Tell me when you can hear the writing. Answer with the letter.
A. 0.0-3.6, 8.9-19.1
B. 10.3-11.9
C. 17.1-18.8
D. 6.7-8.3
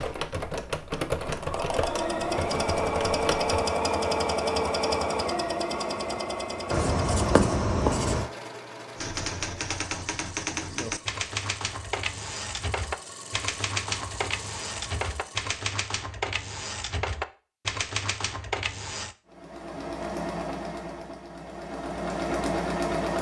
D.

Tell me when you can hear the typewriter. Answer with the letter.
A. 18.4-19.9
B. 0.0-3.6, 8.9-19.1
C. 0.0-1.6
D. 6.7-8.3
B.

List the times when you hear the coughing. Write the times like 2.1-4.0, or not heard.
not heard.